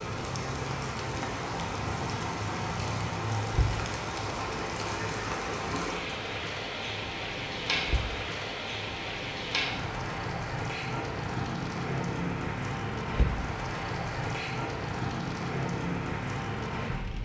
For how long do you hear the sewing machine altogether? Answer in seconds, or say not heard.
not heard.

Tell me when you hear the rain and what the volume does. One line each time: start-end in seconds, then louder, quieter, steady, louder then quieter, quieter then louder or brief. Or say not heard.
0.0-17.2 steady.